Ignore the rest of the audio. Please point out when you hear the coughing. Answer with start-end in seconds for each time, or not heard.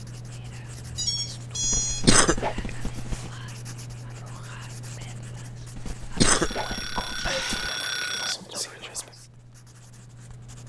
1.6-3.3, 5.8-7.7.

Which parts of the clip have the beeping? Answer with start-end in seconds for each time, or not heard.
0.9-2.4, 6.3-8.3.